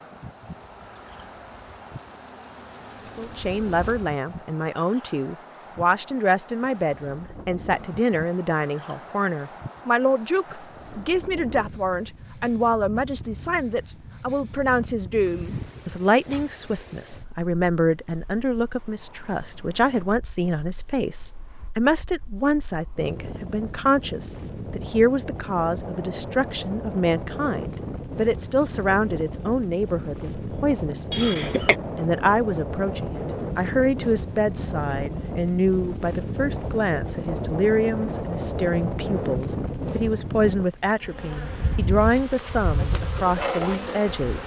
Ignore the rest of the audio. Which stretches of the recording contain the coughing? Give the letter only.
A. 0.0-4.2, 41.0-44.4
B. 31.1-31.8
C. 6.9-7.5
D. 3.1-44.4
B.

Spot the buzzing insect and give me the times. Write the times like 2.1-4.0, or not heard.
0.0-4.2, 41.0-44.4.